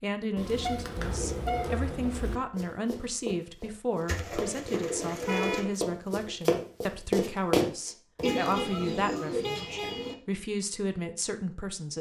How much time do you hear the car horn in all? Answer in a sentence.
The car horn can be heard for 4 seconds in total.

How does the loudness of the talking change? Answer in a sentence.
The loudness of the talking stays about the same.